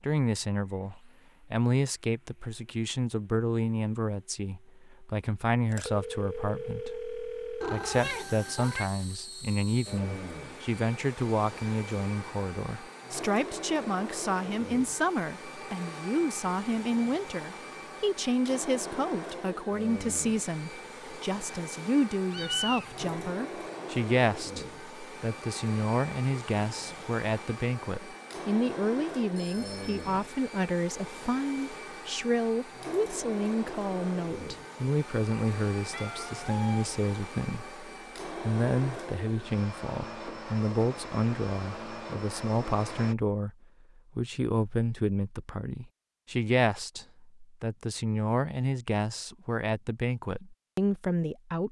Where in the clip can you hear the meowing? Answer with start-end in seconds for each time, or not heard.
7.6-8.8, 22.3-23.1, 35.8-36.9.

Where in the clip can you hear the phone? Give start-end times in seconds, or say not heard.
5.7-7.7, 29.4-30.2.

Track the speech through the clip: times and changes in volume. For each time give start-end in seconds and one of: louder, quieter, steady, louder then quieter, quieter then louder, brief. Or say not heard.
0.0-51.6 steady.